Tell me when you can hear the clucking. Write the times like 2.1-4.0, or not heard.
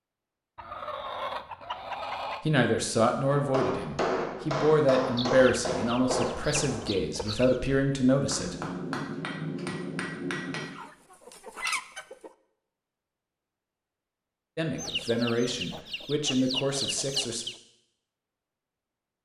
0.6-2.5, 5.2-7.8, 10.6-12.3, 14.8-17.6.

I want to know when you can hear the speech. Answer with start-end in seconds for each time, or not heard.
2.4-8.6, 14.6-17.4.